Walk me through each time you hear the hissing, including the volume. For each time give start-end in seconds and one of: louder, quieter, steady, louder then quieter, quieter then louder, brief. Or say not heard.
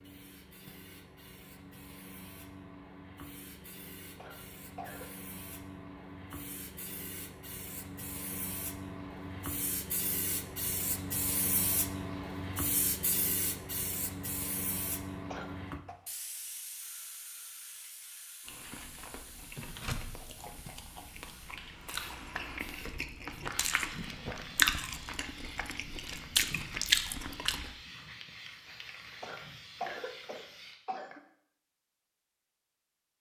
0.0-30.8 louder then quieter.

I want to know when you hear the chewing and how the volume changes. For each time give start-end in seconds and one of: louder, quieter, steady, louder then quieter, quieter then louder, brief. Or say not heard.
18.4-27.8 louder.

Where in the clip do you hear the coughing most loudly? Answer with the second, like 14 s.
30 s.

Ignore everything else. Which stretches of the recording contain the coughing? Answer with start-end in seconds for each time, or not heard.
4.2-5.1, 15.3-15.9, 29.2-31.2.